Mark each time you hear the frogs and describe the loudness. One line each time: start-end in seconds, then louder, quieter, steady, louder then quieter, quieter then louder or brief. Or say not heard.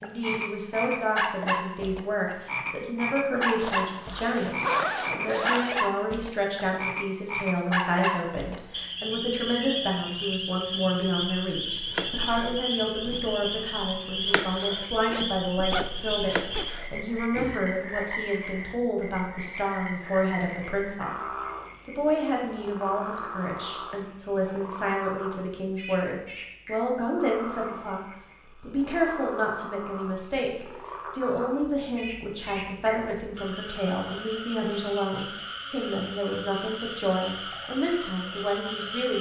0.0-39.1 quieter.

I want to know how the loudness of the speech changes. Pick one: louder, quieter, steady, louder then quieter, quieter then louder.
steady.